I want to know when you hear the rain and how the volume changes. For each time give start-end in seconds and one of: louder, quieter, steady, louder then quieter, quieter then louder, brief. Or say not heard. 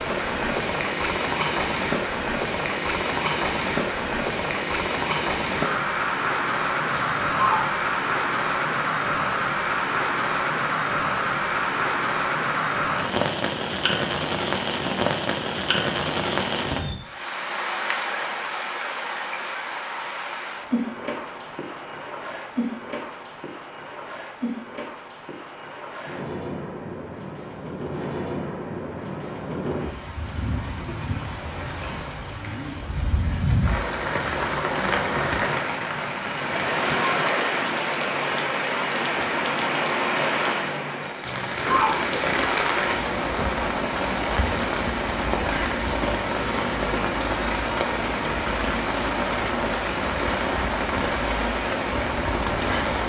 0.0-53.0 quieter then louder.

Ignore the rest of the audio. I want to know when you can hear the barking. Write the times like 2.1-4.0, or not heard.
6.9-7.7, 41.2-42.0.